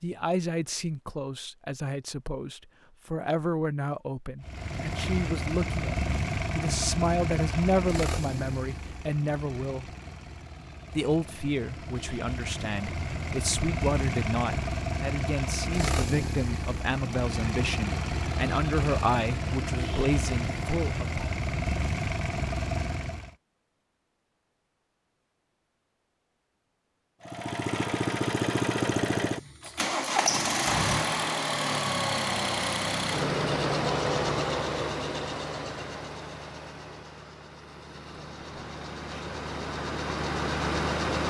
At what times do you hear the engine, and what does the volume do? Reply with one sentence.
You can hear the engine from 4.4 to 23.4 s, getting quieter then louder; and from 27.2 to 41.2 s, getting quieter then louder.